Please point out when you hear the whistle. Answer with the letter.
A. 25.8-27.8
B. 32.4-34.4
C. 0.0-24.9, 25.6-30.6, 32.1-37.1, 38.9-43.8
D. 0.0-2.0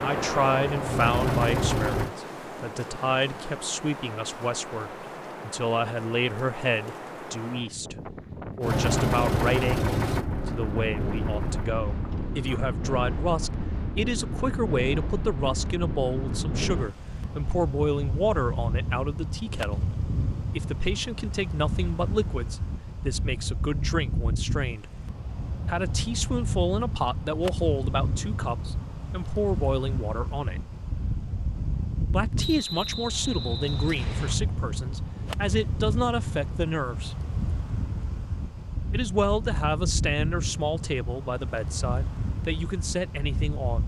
B.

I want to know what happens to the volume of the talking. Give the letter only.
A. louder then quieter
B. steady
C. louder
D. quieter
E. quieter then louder
B.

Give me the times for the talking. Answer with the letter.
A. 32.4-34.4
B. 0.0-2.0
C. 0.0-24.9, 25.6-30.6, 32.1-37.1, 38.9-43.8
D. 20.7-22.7
C.